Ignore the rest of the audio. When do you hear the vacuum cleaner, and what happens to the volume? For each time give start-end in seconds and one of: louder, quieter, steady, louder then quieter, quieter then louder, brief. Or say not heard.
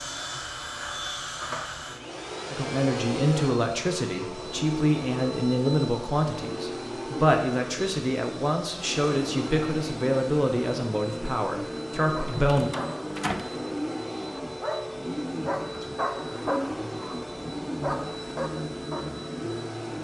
0.0-19.9 steady.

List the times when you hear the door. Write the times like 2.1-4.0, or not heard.
12.3-13.6.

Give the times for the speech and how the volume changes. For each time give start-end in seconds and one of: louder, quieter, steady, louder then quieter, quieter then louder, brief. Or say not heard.
2.5-12.7 steady.